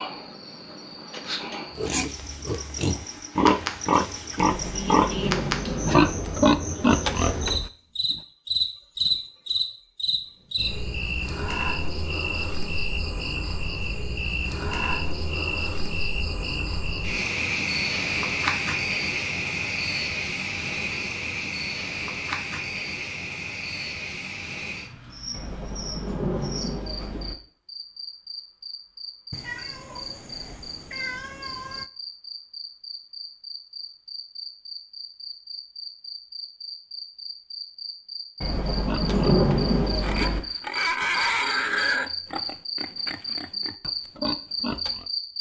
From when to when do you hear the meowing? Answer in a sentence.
You can hear the meowing from 29.3 to 31.9 s.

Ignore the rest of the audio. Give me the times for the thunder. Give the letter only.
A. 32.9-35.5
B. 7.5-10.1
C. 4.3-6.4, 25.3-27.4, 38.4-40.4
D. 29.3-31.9
C.